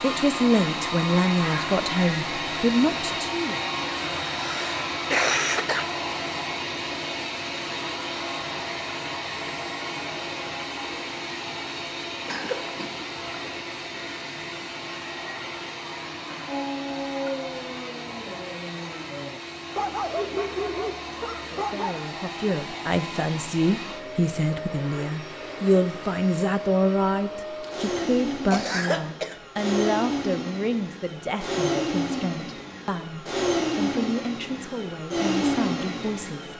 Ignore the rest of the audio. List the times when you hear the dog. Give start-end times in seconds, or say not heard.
16.4-22.0.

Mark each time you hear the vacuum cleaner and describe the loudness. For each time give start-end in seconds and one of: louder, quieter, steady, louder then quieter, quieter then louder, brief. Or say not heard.
0.0-36.5 quieter then louder.